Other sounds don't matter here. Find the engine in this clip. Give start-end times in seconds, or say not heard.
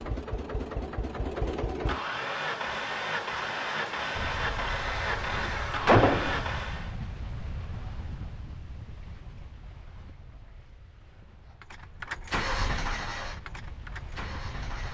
0.0-7.0, 11.4-14.8.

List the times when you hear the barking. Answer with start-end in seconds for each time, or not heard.
not heard.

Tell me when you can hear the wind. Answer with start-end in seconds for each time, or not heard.
4.2-14.8.